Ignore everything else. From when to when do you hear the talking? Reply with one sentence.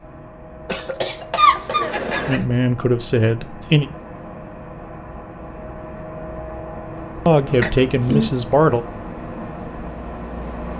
You can hear the talking from 2.2 to 3.9 s and from 7.2 to 8.8 s.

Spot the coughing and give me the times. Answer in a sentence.
You can hear the coughing from 0.7 to 2.5 s and from 7.6 to 8.3 s.